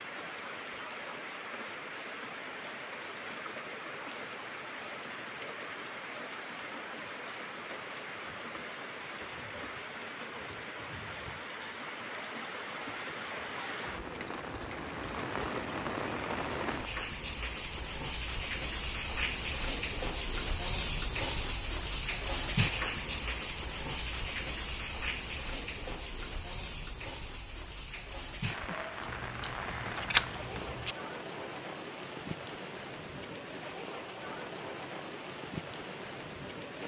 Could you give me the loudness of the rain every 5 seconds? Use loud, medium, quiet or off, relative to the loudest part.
medium, medium, medium, loud, loud, medium, medium, medium.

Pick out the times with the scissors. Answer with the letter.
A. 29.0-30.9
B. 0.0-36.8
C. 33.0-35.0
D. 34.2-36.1
A.